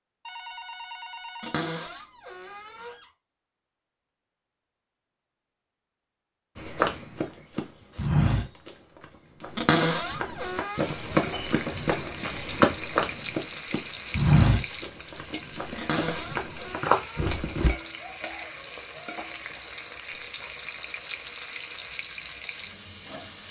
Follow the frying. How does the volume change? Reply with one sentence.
The volume of the frying stays about the same.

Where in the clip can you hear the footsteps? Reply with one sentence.
You can hear the footsteps from 6.5 to 17.7 s.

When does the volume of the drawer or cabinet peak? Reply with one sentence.
The loudest moment of the drawer or cabinet is at 10 seconds.